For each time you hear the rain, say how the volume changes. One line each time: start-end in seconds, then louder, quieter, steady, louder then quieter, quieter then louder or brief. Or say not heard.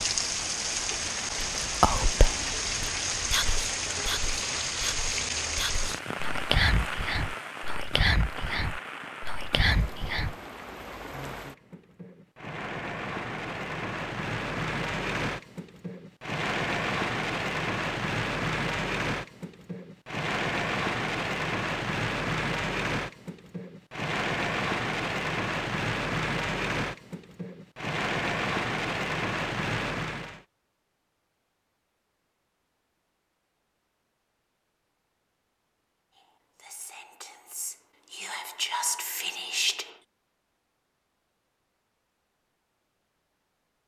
0.0-30.4 quieter then louder.